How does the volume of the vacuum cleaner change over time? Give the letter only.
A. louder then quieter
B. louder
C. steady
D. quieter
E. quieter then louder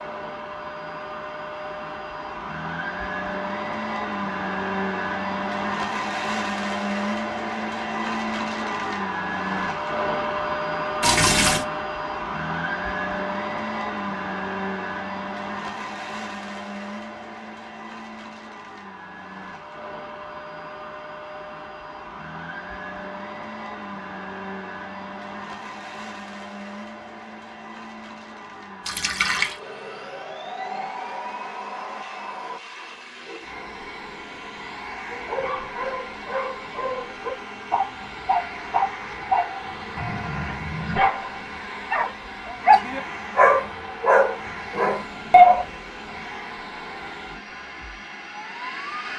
D.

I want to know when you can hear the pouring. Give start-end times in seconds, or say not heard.
11.0-11.7, 28.9-29.6.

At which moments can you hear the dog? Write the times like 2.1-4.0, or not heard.
35.1-45.6.